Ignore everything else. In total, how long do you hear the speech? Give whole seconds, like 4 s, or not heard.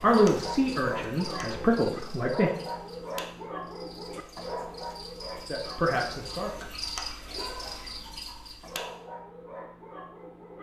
4 s.